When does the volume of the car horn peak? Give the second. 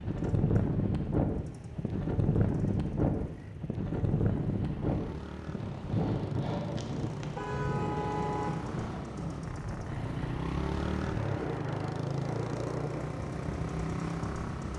8 s.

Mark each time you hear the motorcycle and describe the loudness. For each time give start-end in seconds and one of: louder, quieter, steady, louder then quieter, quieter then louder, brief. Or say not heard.
0.0-14.7 louder.